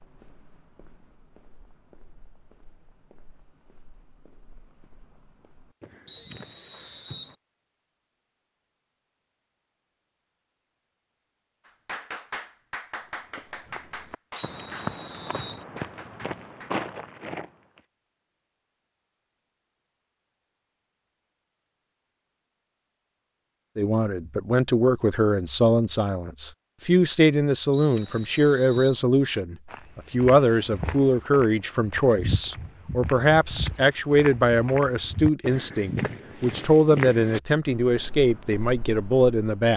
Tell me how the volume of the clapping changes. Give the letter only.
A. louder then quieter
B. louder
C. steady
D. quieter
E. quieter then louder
D.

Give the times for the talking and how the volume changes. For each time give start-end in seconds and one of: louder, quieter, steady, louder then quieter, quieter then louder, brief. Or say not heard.
23.8-39.7 steady.